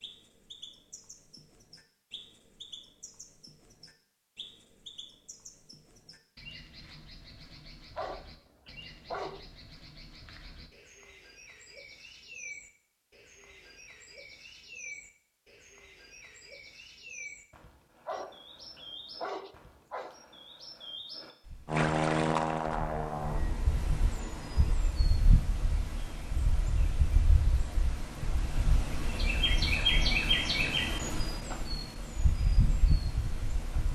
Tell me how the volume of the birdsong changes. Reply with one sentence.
The volume of the birdsong goes up.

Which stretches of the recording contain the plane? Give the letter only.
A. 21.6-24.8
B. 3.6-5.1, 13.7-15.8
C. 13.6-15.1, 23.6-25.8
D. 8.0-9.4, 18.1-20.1
A.